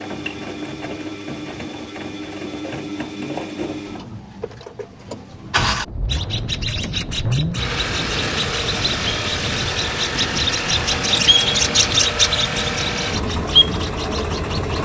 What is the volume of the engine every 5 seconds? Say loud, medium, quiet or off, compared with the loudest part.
medium, loud, loud.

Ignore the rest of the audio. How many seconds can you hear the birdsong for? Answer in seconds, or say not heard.
9 s.